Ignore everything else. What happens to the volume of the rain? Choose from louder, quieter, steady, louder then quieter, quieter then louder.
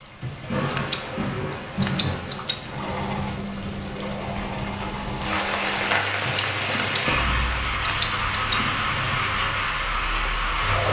quieter then louder.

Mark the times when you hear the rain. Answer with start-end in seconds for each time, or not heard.
0.0-10.8.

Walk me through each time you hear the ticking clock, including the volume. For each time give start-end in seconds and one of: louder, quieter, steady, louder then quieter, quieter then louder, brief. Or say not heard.
not heard.